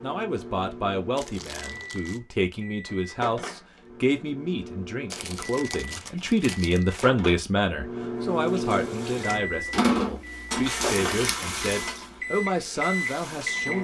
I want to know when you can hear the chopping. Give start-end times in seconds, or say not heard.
not heard.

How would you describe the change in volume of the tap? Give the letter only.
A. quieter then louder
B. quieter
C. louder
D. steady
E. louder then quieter
E.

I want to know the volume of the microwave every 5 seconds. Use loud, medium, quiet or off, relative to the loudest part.
medium, loud, loud.